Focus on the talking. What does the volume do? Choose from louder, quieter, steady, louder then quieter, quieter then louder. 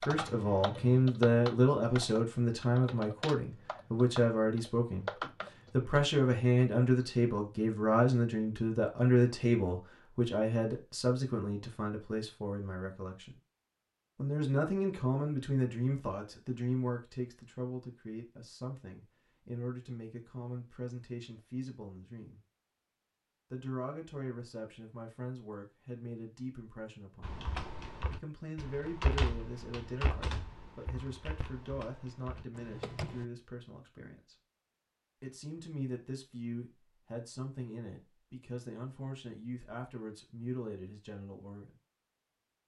quieter.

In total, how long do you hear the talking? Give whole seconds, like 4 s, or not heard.
38 s.